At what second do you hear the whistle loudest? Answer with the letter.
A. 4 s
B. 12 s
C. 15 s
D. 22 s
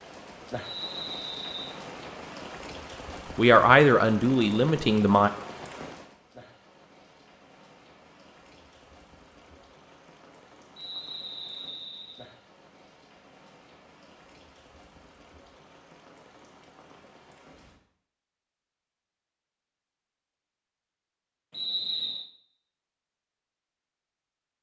D.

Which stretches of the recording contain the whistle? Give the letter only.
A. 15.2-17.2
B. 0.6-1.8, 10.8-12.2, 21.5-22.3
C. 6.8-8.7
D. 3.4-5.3
B.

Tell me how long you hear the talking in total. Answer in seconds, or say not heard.
2 s.